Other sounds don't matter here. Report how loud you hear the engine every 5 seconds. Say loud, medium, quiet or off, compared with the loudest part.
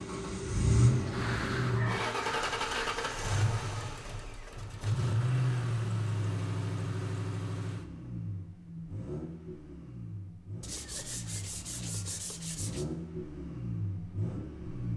loud, loud, medium.